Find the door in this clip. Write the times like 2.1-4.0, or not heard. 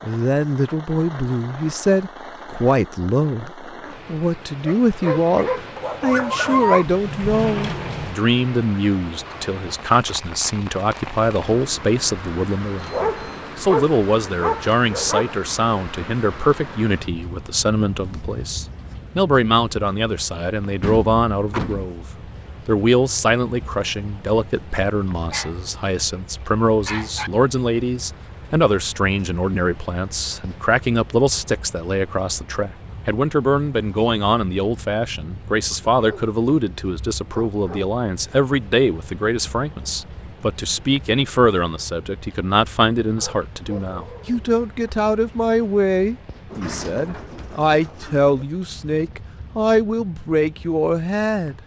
6.8-8.2, 20.8-21.9, 46.5-48.5.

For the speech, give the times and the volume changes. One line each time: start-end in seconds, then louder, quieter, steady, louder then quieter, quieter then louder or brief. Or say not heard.
0.0-22.1 steady
22.6-51.5 steady.